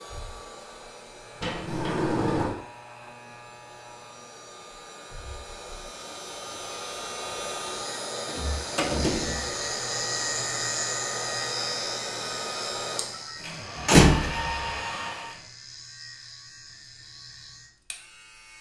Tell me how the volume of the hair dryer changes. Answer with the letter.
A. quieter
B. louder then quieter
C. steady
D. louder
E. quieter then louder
D.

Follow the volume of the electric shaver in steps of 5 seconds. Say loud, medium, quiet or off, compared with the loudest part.
quiet, medium, loud, quiet.